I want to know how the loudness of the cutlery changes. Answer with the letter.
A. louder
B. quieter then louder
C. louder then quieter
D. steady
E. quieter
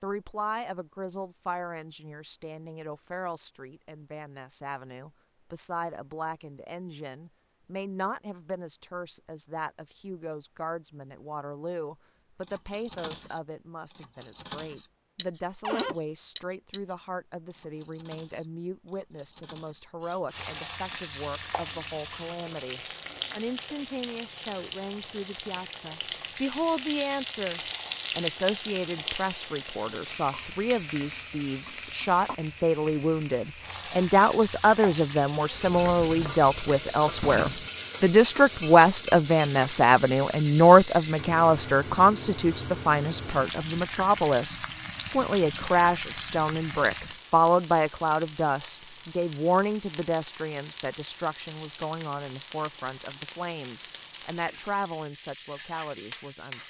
E.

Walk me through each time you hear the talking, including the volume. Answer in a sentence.
The talking can be heard from 0.0 to 56.6 s, getting louder then quieter.